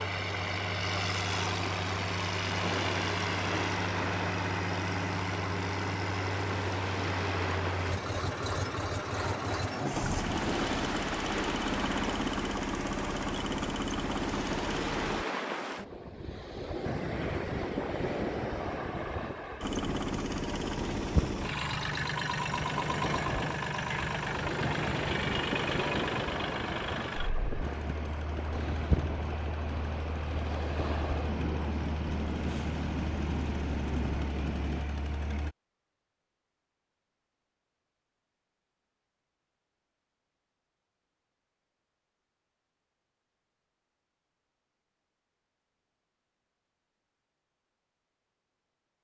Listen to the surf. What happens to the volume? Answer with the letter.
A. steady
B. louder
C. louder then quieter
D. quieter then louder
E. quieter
A.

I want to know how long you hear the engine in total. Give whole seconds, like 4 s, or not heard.
31 s.